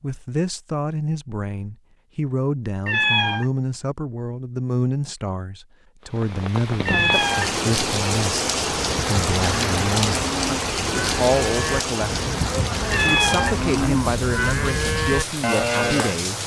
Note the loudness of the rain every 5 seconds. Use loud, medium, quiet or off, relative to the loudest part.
off, loud, loud, medium.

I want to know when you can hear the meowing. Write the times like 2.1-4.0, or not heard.
2.9-3.5, 6.8-7.5, 12.9-13.6.